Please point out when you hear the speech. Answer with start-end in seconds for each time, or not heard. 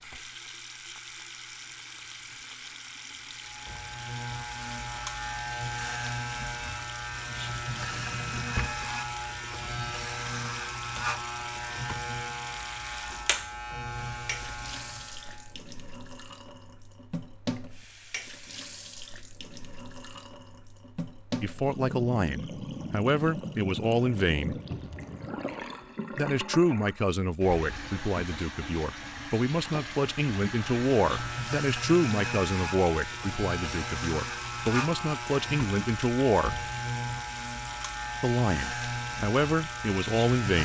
21.4-24.6, 26.1-36.6, 38.2-40.6.